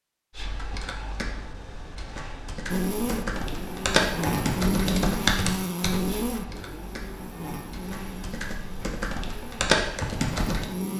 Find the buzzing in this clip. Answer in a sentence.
The buzzing can be heard from 2.6 to 10.9 s.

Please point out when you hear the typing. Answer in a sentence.
You can hear the typing from 0.3 to 10.7 s.